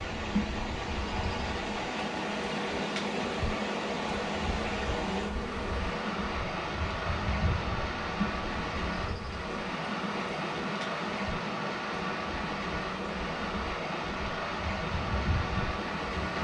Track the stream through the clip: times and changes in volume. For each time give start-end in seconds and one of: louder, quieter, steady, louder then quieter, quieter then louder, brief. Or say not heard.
0.0-16.4 steady.